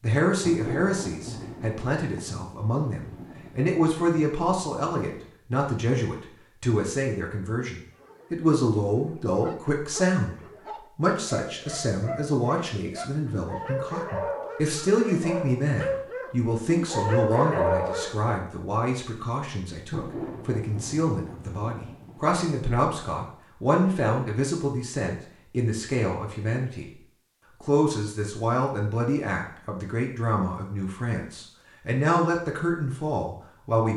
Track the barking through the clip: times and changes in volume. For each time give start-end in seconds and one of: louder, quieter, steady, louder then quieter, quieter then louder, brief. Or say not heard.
7.8-18.3 louder.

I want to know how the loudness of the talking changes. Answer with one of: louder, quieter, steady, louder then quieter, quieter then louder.
steady.